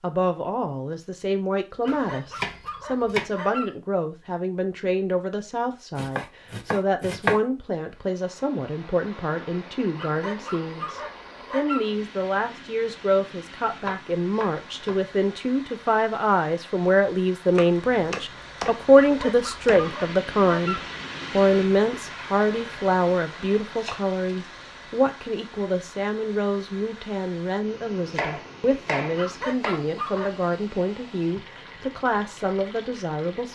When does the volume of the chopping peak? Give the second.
7 s.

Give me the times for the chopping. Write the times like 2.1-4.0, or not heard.
1.9-3.3, 6.0-7.4, 13.8-15.1, 17.5-19.9, 23.8-24.7, 28.0-29.9.